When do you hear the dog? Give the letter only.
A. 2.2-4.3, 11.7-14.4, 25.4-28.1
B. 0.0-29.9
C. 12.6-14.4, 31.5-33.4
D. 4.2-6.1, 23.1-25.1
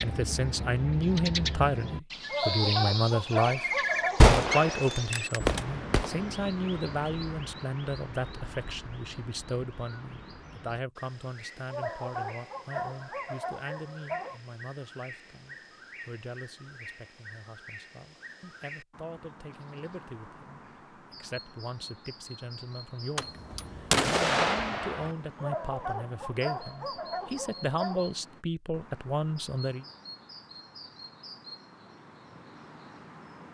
A.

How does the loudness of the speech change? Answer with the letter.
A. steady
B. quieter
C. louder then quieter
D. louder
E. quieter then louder
E.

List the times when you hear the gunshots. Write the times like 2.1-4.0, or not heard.
4.2-6.1, 23.1-25.1.